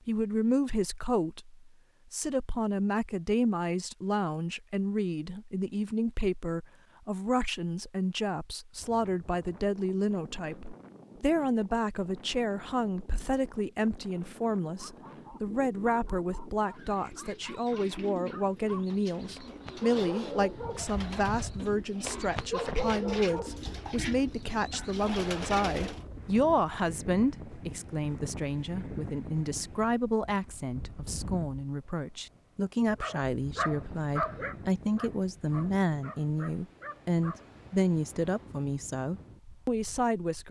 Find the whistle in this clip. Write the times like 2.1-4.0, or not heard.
not heard.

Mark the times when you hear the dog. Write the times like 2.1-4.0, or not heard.
14.8-25.1, 33.0-37.5.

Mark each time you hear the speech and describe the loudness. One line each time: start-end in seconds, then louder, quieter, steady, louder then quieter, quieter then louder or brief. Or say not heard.
0.1-40.4 steady.